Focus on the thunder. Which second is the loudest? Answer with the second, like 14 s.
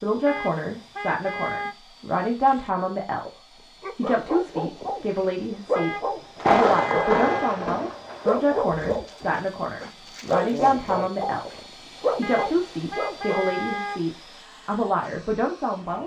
7 s.